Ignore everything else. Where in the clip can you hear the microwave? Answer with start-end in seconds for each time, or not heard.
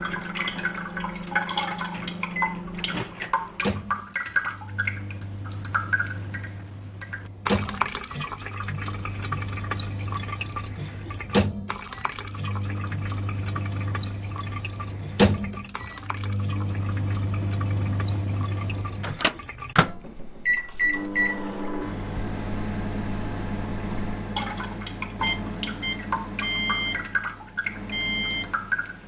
0.0-29.0.